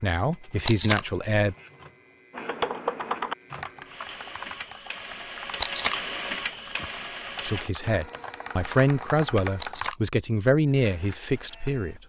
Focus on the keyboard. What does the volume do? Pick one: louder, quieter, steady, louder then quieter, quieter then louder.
quieter then louder.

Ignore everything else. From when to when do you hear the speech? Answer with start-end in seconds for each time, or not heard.
0.0-1.6, 7.4-12.0.